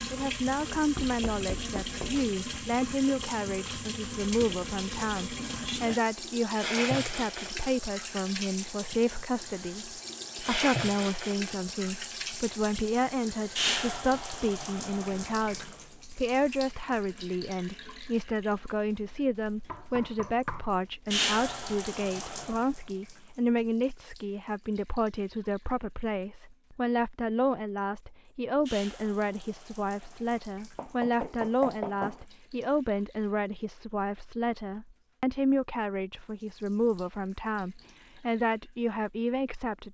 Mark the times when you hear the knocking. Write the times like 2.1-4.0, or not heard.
0.9-2.4, 19.6-20.8, 30.8-32.2.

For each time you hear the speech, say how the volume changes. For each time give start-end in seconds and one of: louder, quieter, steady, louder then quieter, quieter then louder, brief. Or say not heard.
0.1-39.8 steady.